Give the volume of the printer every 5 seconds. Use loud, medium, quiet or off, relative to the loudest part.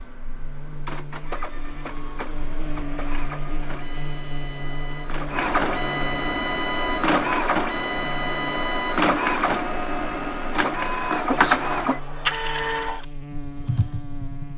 quiet, loud, loud.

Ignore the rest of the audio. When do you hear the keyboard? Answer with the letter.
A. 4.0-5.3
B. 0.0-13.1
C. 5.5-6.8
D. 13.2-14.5
D.